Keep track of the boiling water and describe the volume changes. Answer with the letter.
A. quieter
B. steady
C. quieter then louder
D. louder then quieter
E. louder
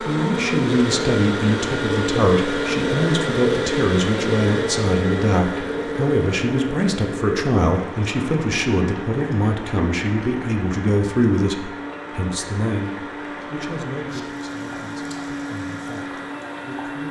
A.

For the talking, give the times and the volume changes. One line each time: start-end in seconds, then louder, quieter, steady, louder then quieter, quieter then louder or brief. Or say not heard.
0.1-17.0 quieter.